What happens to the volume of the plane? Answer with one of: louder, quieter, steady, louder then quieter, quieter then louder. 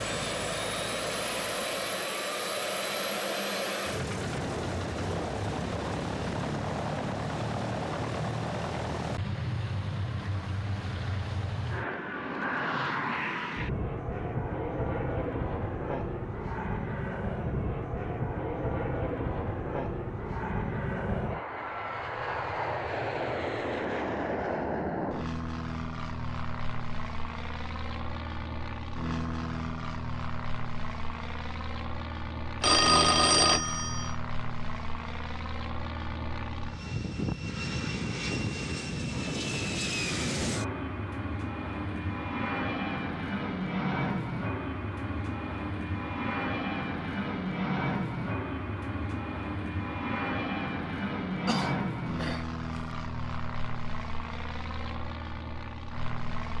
steady.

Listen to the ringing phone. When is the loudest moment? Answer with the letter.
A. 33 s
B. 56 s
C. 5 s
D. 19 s
A.